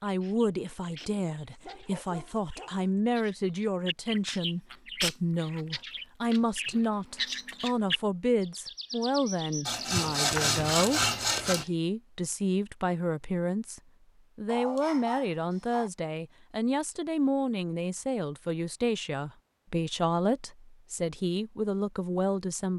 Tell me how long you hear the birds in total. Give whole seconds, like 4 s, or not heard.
12 s.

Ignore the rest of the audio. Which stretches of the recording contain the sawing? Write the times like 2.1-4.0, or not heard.
9.7-11.7.